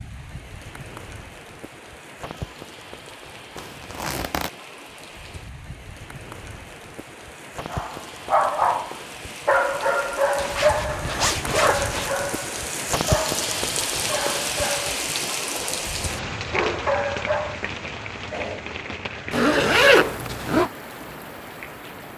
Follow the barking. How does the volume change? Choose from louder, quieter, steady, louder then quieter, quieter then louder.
quieter.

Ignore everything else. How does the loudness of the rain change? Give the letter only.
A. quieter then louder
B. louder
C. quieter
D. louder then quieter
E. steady
D.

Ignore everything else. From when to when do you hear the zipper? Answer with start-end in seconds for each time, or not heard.
3.5-4.5, 10.3-12.2, 19.3-20.7.